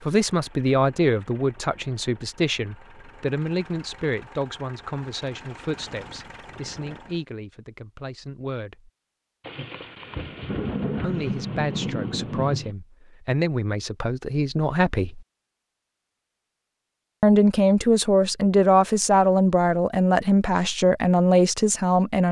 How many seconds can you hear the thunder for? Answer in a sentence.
The thunder can be heard for 3 seconds in total.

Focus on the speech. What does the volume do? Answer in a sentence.
The volume of the speech goes down, then up.